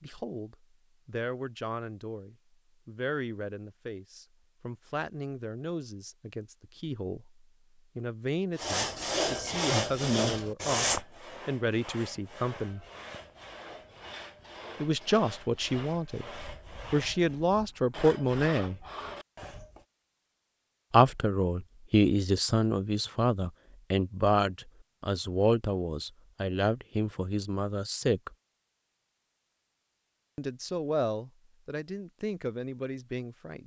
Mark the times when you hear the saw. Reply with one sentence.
You can hear the saw from 8.6 to 19.9 s.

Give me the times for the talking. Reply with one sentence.
You can hear the talking from 0.0 to 12.8 s, from 14.8 to 18.8 s, from 20.9 to 28.3 s and from 30.4 to 33.6 s.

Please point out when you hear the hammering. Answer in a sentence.
You can't hear the hammering here.